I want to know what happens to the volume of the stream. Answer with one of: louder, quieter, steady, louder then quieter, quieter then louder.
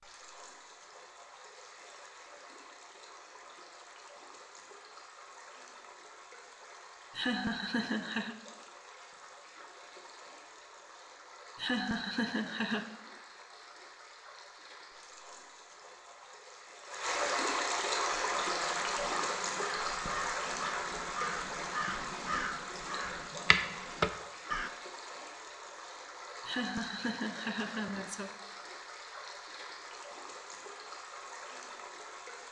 louder then quieter.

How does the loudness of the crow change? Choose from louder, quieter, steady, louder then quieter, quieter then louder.
louder.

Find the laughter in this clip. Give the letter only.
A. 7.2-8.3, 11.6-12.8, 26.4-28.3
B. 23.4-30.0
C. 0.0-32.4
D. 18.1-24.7
A.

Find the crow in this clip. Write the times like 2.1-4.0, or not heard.
18.1-24.7.